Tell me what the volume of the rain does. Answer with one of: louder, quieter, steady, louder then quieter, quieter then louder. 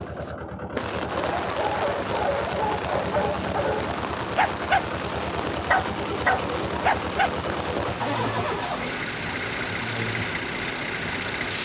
steady.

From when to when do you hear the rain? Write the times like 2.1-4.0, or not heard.
0.0-11.5.